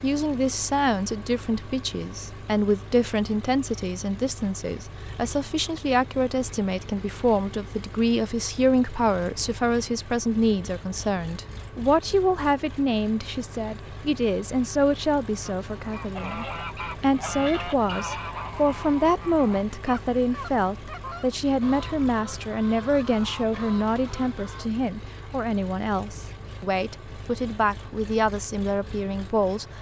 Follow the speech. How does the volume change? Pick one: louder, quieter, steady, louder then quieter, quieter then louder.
steady.